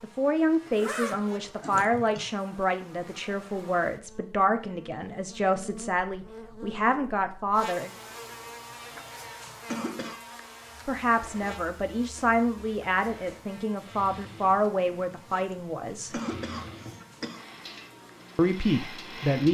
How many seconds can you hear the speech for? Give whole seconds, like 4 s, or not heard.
14 s.